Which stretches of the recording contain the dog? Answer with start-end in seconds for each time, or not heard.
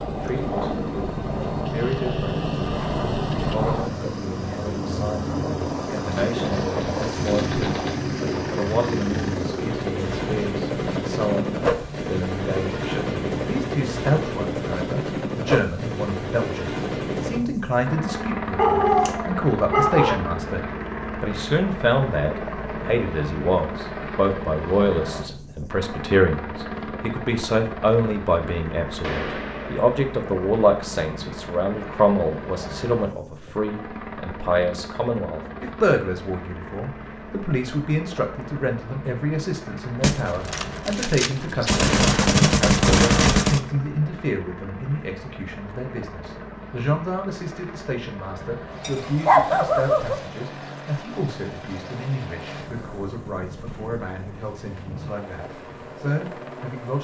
18.6-20.2, 48.8-50.1.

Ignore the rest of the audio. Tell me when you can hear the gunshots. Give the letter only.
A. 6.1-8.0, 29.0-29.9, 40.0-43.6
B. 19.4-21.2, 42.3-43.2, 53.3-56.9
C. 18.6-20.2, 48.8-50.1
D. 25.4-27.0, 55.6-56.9
A.